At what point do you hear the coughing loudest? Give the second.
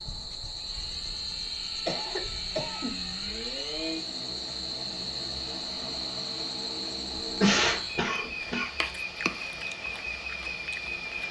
8 s.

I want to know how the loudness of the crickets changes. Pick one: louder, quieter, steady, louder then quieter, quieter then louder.
steady.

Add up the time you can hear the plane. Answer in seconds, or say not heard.
11 s.